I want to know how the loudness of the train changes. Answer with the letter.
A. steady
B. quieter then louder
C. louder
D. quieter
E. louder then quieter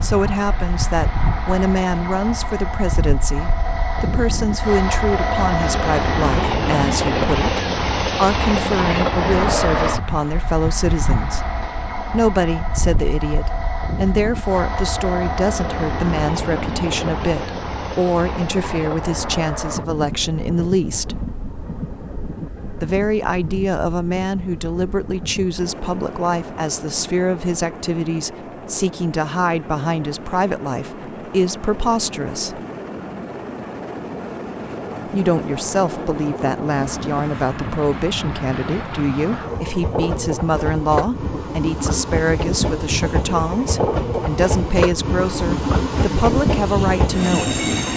B.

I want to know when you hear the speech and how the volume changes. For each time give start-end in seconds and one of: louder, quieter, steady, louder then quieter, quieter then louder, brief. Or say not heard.
0.0-11.4 steady
12.1-21.1 steady
22.8-32.6 steady
35.0-47.6 steady.